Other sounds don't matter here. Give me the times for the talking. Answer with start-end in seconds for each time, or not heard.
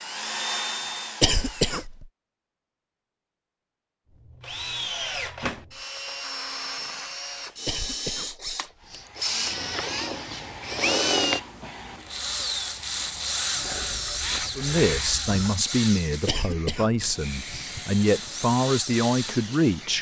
14.6-19.9.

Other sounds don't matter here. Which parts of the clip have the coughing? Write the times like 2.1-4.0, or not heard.
1.2-2.0, 7.7-9.1, 16.2-17.8.